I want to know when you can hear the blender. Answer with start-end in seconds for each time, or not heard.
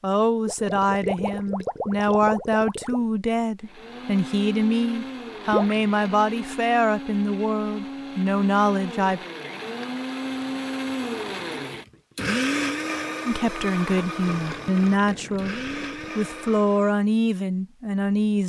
3.6-17.0.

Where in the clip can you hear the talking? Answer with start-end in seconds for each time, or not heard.
0.0-9.2, 13.2-18.4.